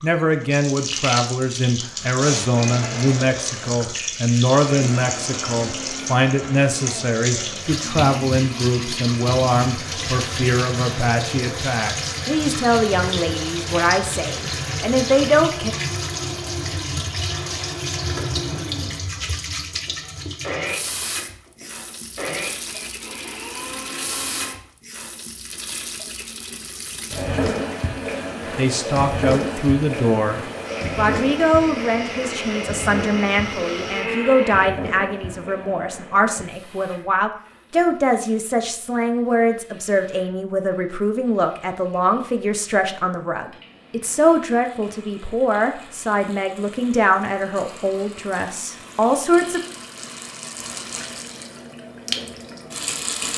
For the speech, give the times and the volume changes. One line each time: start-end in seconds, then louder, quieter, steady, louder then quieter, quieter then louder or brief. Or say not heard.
0.0-15.8 steady
28.6-49.6 steady.